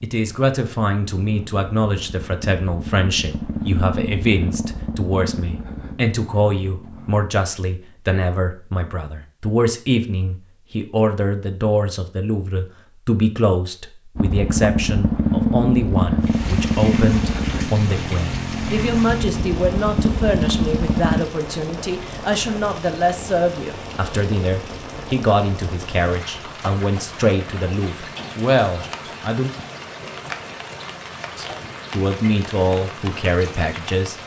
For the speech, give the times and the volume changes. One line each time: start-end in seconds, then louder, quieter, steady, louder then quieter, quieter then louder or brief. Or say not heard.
0.0-29.5 steady
31.4-34.1 brief.